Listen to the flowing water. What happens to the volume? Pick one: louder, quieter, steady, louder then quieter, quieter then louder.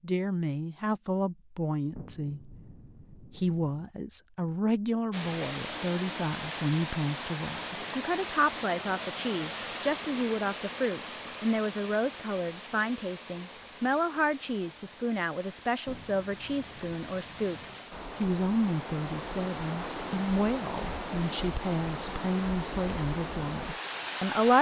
quieter then louder.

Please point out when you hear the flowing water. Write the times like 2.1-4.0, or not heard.
5.1-24.5.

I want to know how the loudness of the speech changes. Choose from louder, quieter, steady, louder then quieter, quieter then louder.
steady.